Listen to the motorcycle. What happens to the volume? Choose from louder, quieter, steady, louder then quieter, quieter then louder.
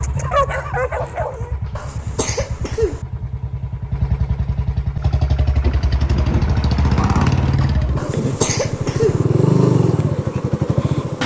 louder.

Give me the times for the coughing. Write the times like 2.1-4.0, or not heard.
1.8-3.0, 8.0-9.2.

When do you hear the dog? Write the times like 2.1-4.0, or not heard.
0.0-1.6.